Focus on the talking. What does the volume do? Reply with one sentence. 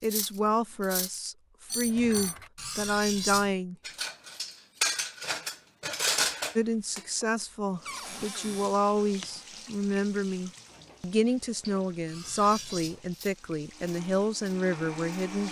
The loudness of the talking stays about the same.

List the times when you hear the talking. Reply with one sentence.
You can hear the talking from 0.0 to 3.8 s and from 6.5 to 15.4 s.